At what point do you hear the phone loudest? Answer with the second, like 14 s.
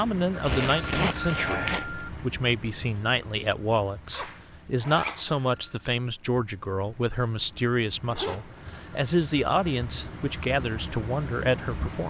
1 s.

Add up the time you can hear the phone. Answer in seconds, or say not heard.
4 s.